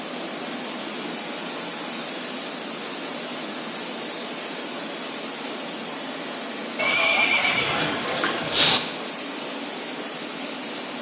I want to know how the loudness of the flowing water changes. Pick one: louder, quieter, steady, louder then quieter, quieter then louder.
steady.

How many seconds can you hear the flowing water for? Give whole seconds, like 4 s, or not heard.
11 s.